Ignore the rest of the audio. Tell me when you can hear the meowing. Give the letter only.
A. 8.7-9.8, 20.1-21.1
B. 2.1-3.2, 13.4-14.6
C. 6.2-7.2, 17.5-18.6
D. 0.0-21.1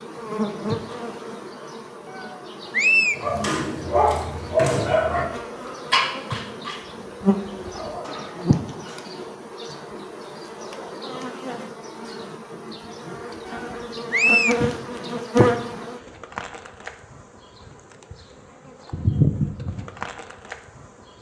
B.